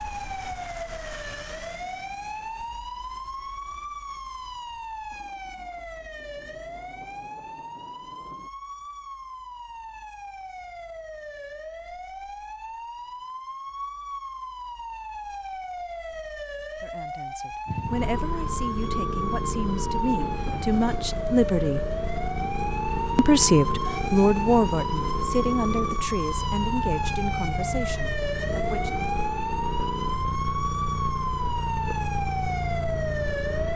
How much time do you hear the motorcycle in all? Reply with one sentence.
The motorcycle can be heard for 16 seconds in total.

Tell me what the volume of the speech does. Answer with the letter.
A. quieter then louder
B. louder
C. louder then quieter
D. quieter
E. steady
C.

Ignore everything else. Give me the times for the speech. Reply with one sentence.
You can hear the speech from 16.8 to 21.9 s and from 23.1 to 29.1 s.